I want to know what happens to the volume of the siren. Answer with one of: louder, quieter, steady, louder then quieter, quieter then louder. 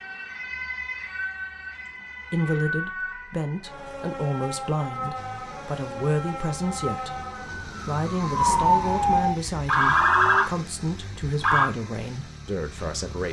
louder.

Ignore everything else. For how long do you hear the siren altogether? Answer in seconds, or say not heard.
12 s.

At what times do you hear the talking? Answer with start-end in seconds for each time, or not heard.
2.3-13.2.